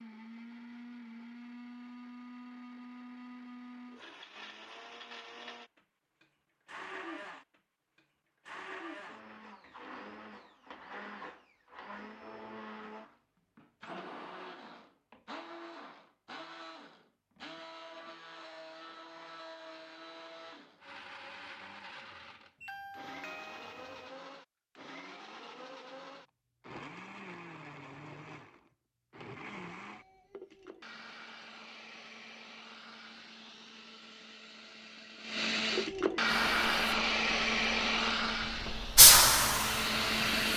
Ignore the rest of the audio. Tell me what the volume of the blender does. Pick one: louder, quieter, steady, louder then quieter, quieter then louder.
louder.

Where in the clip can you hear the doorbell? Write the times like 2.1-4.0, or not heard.
22.6-24.1.